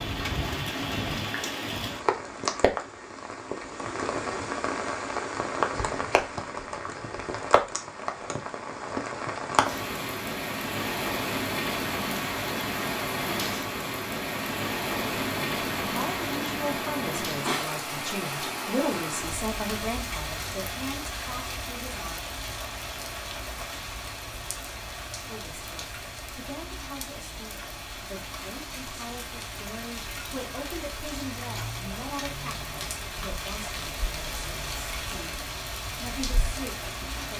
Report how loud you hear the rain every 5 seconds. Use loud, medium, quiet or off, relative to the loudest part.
loud, loud, loud, loud, medium, medium, medium, medium.